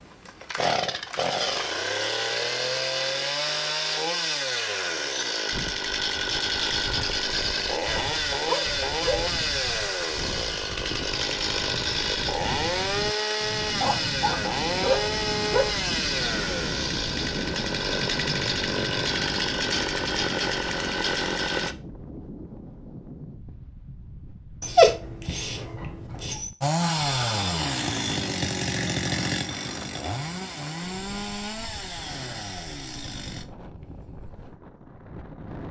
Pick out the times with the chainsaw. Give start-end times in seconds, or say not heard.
0.0-21.8, 26.6-33.5.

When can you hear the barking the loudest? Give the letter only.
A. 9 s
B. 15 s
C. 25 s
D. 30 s
C.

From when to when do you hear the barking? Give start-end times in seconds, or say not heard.
7.9-9.2, 13.8-15.7, 24.6-26.5.